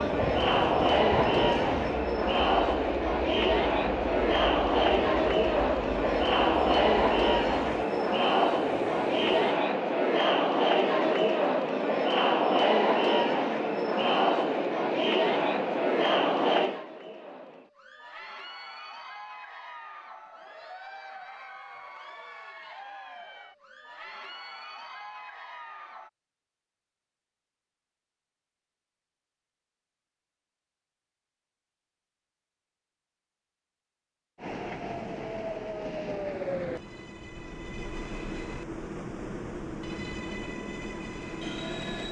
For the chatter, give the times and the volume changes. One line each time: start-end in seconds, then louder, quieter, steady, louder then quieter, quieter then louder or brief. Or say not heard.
0.0-26.1 quieter.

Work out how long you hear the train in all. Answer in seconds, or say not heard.
17 s.